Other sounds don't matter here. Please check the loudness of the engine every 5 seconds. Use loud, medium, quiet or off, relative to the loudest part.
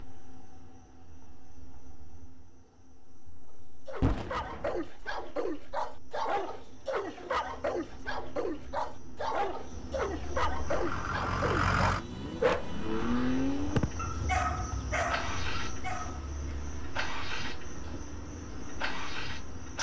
off, off, loud, medium.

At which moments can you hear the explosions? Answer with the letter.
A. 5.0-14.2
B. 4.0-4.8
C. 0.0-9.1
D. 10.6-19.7
B.